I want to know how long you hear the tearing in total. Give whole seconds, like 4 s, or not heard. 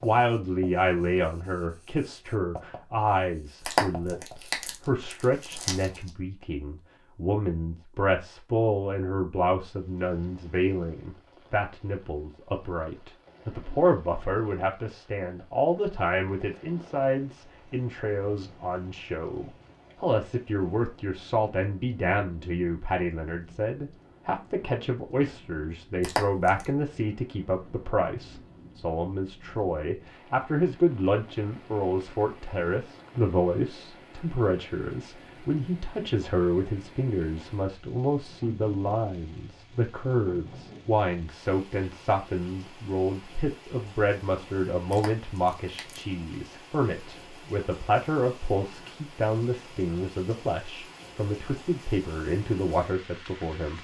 4 s.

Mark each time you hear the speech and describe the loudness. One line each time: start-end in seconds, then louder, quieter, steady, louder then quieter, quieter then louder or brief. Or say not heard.
0.0-53.7 steady.